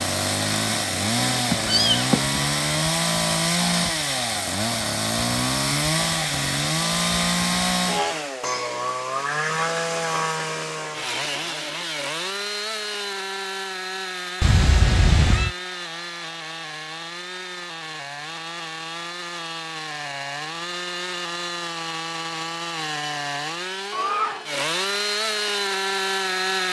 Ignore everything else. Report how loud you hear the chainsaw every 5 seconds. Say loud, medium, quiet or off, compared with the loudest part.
loud, loud, medium, medium, medium, loud.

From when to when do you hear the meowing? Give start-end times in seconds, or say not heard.
1.5-2.3, 14.4-15.6, 23.9-24.5.